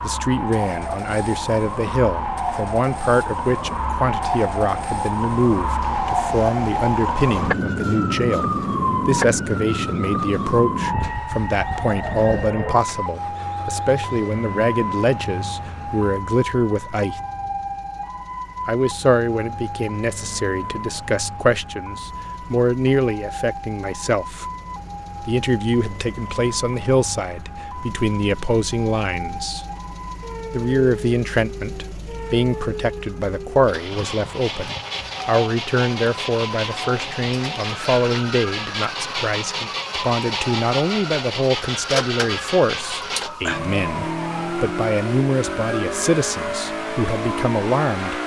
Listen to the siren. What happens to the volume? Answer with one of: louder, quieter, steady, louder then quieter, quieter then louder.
quieter.